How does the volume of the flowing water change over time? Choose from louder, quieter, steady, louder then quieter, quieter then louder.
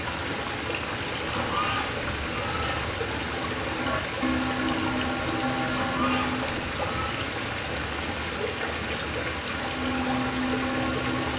steady.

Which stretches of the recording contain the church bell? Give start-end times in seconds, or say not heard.
3.4-6.5, 9.5-11.3.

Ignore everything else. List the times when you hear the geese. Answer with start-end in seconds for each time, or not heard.
1.3-2.9, 5.8-7.2.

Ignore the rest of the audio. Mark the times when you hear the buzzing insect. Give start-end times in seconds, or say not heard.
not heard.